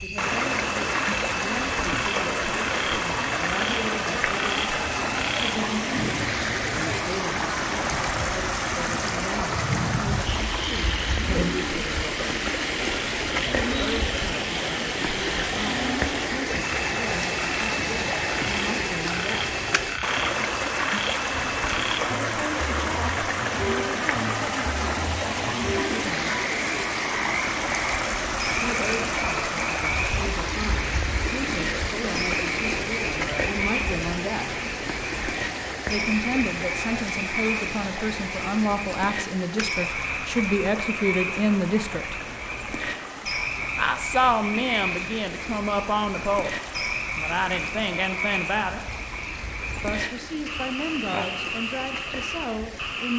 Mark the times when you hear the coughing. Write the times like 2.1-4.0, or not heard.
not heard.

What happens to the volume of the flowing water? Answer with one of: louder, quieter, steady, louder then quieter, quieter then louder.
quieter.